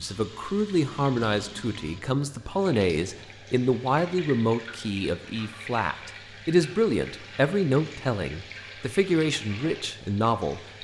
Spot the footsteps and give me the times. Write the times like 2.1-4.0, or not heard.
not heard.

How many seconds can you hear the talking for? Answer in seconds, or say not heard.
11 s.